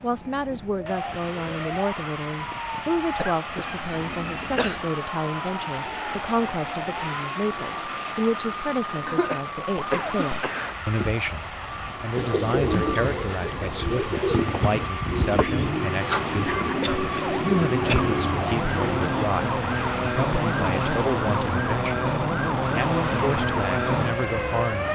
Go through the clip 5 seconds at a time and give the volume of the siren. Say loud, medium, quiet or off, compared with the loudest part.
medium, medium, medium, loud, loud.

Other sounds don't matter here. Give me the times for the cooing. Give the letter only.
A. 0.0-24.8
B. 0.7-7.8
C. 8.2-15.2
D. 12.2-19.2
D.